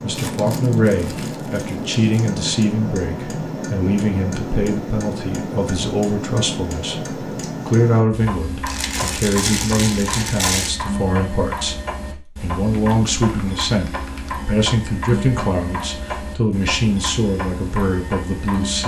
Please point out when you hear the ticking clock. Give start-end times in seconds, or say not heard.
0.0-18.8.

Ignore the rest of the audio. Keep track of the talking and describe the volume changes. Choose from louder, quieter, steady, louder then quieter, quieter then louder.
steady.